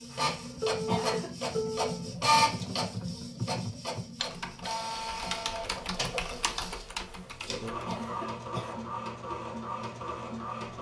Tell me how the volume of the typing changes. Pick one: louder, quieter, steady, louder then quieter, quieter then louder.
steady.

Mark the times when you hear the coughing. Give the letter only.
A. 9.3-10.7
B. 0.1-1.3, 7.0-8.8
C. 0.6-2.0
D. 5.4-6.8
B.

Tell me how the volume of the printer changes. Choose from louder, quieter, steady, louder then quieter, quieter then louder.
quieter.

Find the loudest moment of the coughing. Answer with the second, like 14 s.
1 s.